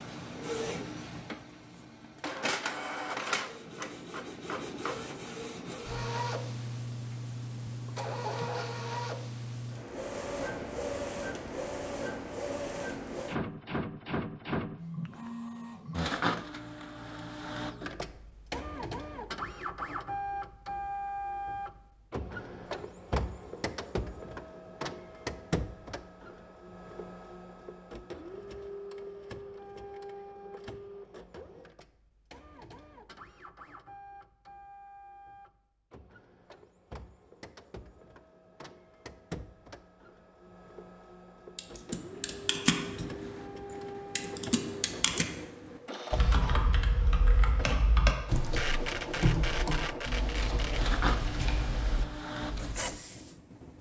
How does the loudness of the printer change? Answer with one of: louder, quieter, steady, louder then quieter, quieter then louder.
quieter then louder.